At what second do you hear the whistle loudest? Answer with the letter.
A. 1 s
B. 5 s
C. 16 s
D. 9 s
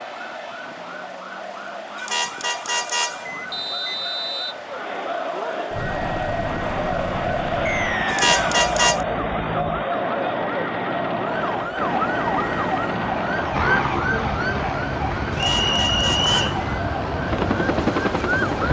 C.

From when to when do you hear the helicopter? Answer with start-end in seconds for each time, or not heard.
5.7-18.6.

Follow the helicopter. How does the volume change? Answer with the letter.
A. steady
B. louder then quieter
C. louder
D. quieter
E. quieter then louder
C.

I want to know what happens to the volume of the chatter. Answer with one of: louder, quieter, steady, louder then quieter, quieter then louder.
louder then quieter.